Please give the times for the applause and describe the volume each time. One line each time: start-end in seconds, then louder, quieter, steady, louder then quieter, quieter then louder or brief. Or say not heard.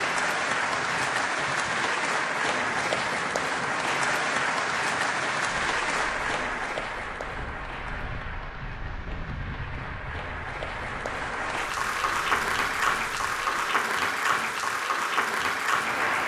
0.0-16.2 quieter then louder.